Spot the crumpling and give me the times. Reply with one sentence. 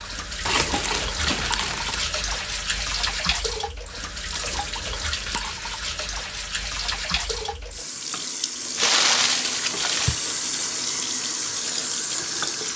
The crumpling can be heard from 0.5 to 2.0 s, from 4.4 to 5.8 s and from 8.8 to 10.2 s.